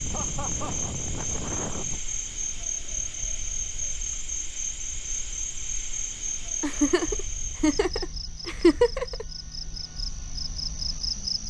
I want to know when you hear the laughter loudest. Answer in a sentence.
The volume of the laughter peaks at 9 seconds.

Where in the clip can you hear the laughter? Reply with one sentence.
You can hear the laughter from 0.1 to 0.9 s and from 6.6 to 9.2 s.